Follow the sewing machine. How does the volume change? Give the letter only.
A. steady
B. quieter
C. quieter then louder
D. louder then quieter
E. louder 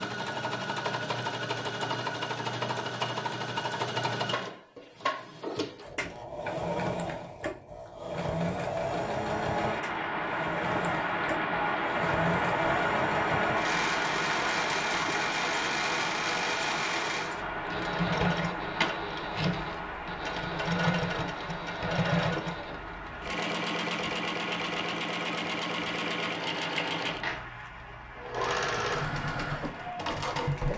A.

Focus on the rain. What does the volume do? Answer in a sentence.
The volume of the rain goes down.